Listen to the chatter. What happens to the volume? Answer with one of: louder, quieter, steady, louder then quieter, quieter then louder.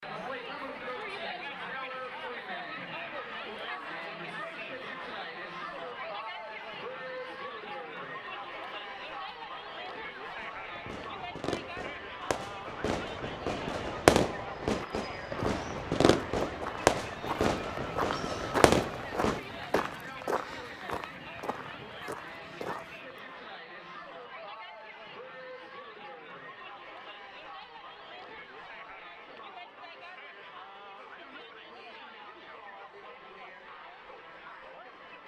quieter.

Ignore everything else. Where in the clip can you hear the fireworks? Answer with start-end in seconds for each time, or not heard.
10.3-19.9.